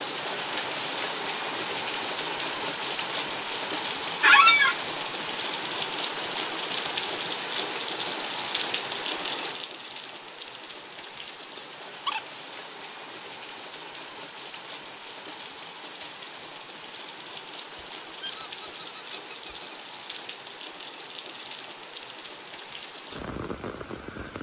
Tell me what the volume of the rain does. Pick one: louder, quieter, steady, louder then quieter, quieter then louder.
quieter.